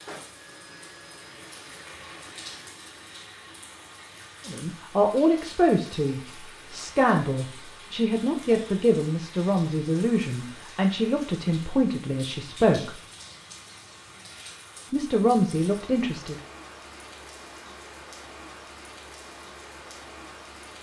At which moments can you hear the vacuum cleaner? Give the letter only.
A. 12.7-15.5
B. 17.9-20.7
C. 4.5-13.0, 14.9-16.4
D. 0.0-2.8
D.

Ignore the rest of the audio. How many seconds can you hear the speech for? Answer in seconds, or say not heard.
10 s.